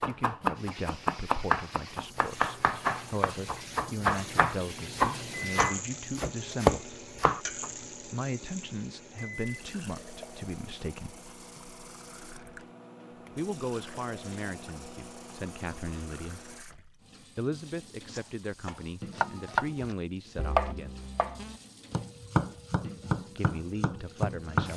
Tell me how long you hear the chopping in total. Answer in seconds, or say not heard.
14 s.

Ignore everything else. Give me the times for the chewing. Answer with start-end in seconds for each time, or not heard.
not heard.